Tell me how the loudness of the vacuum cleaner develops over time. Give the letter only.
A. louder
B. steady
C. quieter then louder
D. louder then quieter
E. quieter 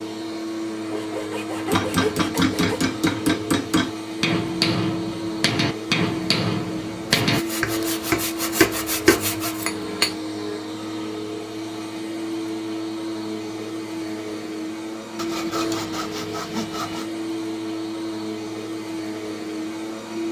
B.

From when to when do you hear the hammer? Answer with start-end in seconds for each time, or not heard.
1.7-10.2.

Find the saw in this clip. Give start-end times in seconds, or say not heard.
0.9-2.8, 7.2-9.7, 15.2-17.1.